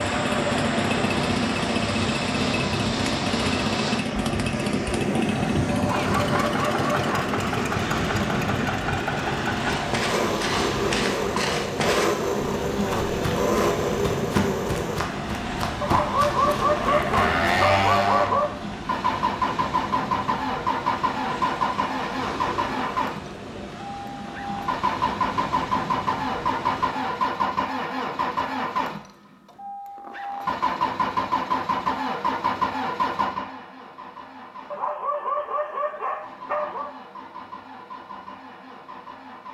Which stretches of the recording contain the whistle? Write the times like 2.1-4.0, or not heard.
not heard.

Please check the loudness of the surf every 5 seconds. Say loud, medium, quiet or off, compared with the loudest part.
loud, loud, loud, medium, medium, medium, off, off.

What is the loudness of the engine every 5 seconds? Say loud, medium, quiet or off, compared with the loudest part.
loud, loud, loud, loud, loud, loud, loud, quiet.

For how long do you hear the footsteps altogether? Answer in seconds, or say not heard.
8 s.